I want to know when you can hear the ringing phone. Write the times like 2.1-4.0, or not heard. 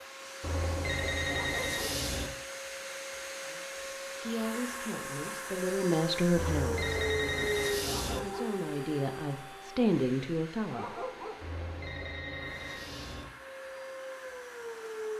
0.4-2.3, 6.3-8.2, 11.4-13.2.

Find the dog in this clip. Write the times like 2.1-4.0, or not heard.
1.2-2.0, 7.8-8.6, 10.7-11.4.